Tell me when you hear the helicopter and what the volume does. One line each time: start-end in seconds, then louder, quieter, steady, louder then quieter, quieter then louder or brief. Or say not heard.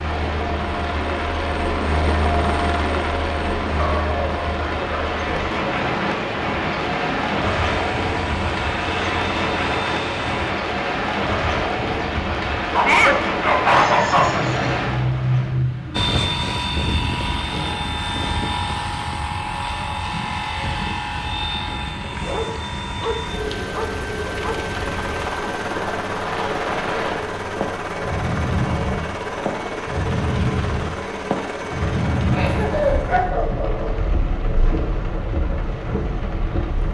0.0-10.6 quieter
15.9-36.8 quieter.